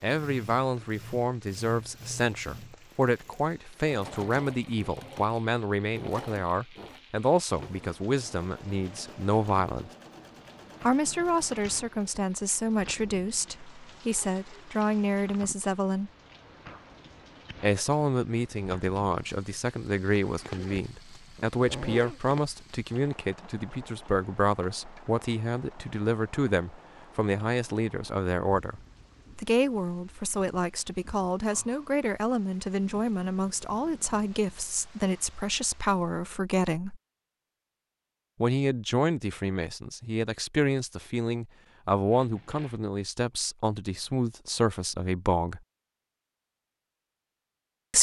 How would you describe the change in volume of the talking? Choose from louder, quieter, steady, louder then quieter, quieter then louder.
steady.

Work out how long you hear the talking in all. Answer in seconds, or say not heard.
42 s.